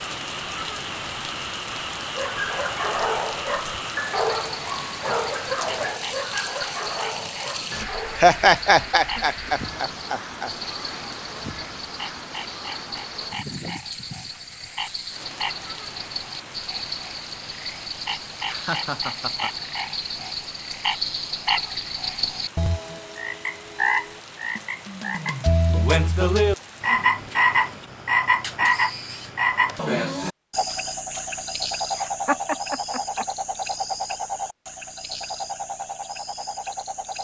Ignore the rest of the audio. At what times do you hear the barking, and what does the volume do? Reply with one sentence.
You can hear the barking from 2.0 to 8.3 s, getting quieter.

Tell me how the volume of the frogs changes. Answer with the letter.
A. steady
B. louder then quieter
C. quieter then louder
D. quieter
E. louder
B.